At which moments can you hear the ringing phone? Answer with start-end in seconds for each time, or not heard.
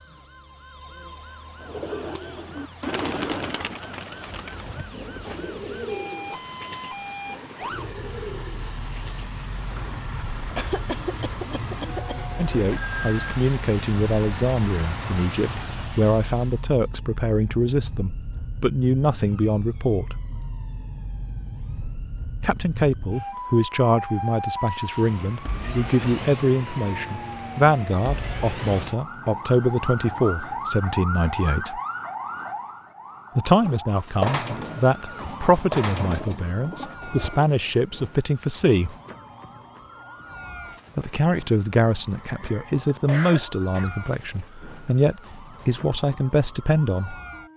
12.7-13.4.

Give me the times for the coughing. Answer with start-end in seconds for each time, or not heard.
10.6-12.2, 42.0-44.0.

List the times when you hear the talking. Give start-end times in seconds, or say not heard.
12.3-20.1, 22.4-31.8, 33.4-39.0, 41.0-47.1.